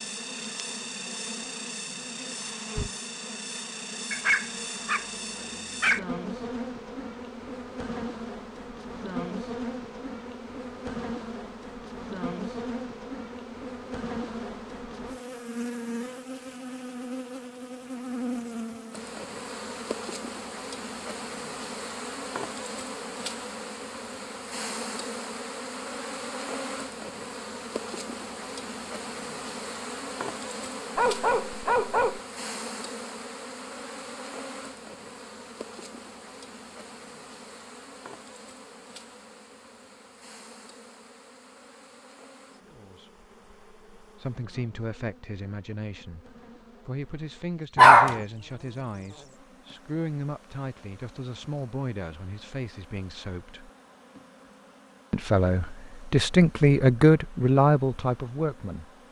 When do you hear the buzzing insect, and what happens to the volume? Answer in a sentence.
The buzzing insect can be heard from 0.0 to 59.0 s, getting quieter.